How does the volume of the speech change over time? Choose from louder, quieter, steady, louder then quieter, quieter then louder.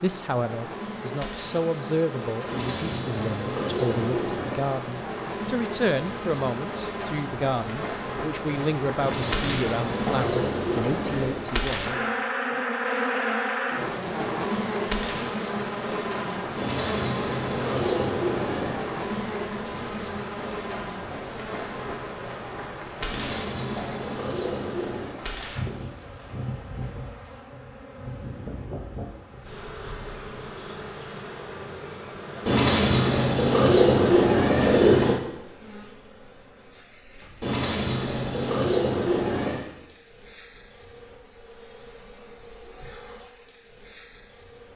steady.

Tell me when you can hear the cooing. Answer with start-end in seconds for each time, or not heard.
2.5-4.8, 9.0-11.4, 16.6-18.8, 23.1-25.2, 32.5-35.2, 37.4-39.6.